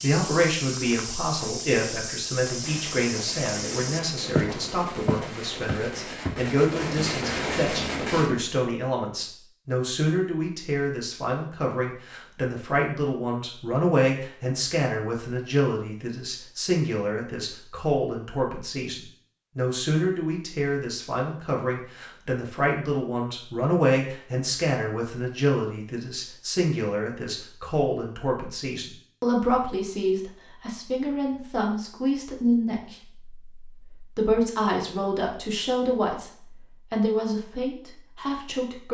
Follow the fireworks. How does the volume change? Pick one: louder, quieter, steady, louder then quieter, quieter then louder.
louder.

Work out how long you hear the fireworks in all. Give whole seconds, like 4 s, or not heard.
6 s.